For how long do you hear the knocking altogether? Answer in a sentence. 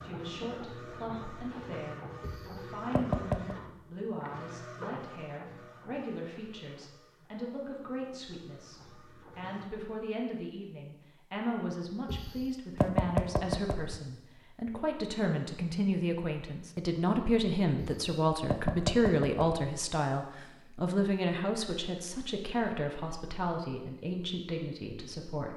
You can hear the knocking for 5 seconds altogether.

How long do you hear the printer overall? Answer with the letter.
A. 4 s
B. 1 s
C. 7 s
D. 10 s
D.